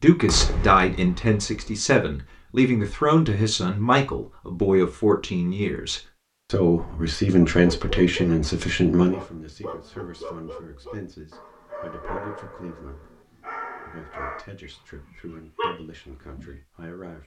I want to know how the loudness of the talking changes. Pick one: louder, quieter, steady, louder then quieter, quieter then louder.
quieter.